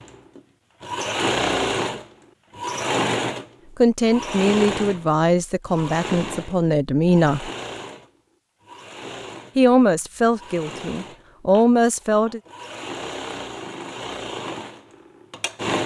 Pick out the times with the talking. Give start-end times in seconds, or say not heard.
3.8-7.5, 9.6-12.4.